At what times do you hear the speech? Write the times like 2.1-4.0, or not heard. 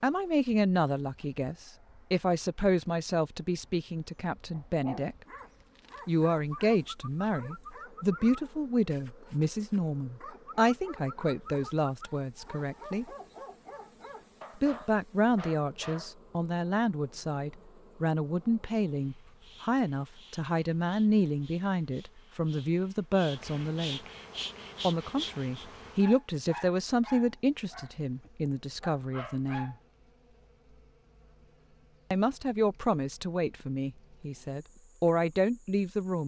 0.0-5.2, 6.0-13.1, 14.6-24.0, 24.8-29.8, 32.1-36.2.